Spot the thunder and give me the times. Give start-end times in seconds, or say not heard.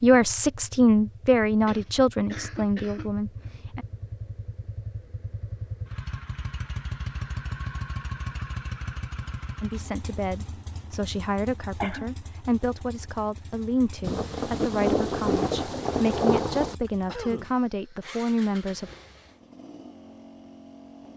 14.0-16.8.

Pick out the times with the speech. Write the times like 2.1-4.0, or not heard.
0.0-3.9, 9.6-18.9.